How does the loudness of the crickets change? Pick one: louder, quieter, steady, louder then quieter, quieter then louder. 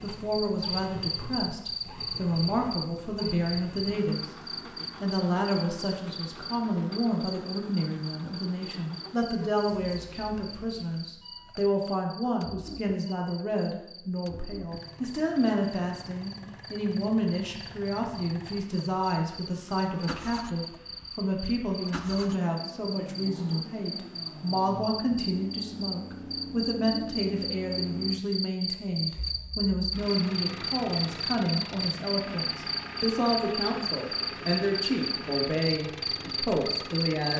quieter then louder.